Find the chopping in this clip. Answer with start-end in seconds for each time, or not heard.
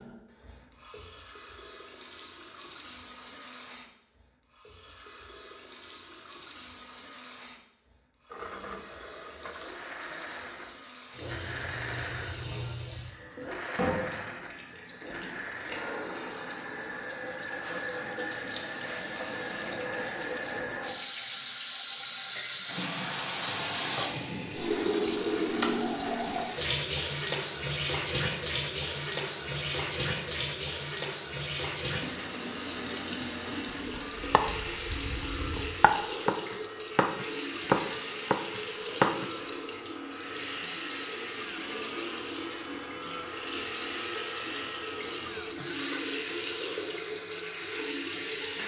33.9-39.2.